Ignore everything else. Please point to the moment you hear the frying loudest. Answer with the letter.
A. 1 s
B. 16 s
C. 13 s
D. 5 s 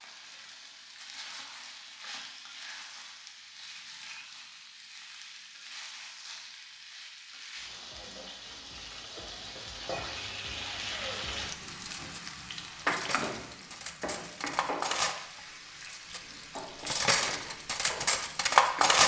C.